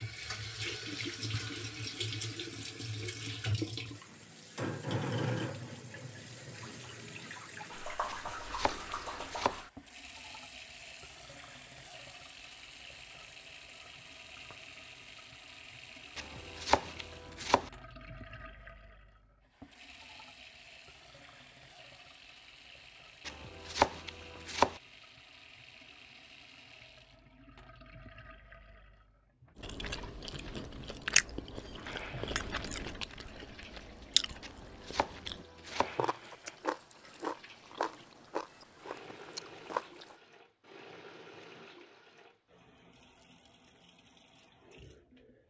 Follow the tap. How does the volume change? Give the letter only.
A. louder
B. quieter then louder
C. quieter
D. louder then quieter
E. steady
C.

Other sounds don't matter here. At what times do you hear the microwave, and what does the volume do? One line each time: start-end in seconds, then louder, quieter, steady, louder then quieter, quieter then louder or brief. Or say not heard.
not heard.